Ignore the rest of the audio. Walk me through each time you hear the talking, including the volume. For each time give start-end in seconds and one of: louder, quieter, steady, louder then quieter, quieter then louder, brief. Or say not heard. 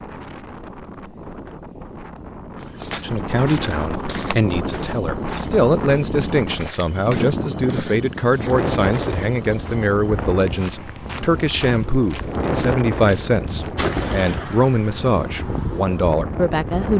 3.0-16.9 steady.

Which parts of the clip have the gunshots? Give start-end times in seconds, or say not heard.
13.8-15.1.